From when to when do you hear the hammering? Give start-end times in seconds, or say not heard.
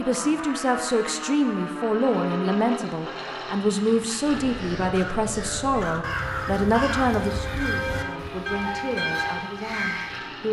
not heard.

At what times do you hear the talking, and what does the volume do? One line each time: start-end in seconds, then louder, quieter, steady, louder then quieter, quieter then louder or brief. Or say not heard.
0.0-10.4 quieter.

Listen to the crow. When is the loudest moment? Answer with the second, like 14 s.
7 s.